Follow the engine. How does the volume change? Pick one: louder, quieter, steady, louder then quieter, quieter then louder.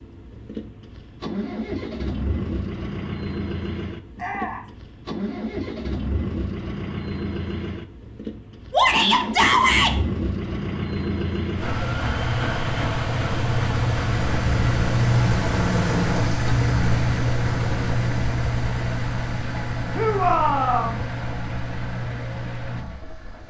louder then quieter.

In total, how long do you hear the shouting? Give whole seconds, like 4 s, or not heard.
3 s.